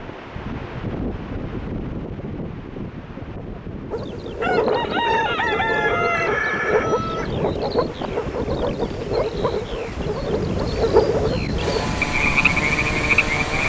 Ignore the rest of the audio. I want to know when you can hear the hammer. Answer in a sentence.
The hammer can't be heard in this clip.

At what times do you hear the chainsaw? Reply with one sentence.
You can hear the chainsaw from 11.6 to 13.6 s.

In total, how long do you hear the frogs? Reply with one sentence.
You can hear the frogs for 10 seconds altogether.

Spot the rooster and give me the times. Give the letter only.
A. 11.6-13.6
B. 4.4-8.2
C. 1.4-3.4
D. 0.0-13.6
B.